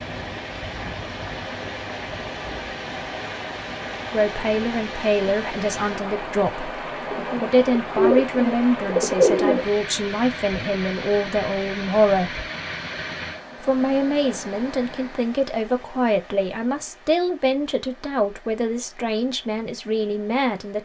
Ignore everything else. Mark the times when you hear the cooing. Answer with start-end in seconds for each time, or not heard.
7.1-9.7.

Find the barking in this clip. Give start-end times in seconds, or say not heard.
not heard.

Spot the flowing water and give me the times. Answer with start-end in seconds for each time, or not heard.
0.0-20.8.